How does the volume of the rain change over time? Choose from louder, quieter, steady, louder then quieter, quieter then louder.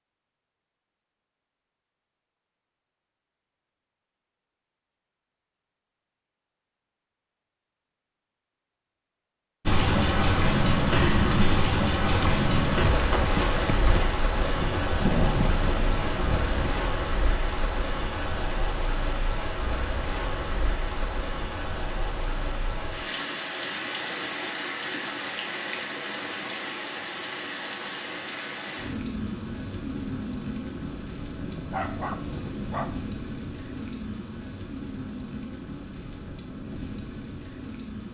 quieter.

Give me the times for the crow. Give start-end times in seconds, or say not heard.
not heard.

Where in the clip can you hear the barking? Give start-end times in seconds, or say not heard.
31.4-33.0.